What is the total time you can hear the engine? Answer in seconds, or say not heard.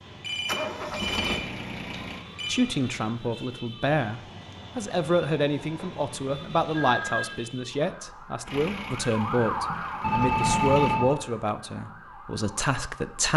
4 s.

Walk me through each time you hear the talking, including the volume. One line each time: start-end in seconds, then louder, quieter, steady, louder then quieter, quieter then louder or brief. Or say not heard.
2.5-13.3 steady.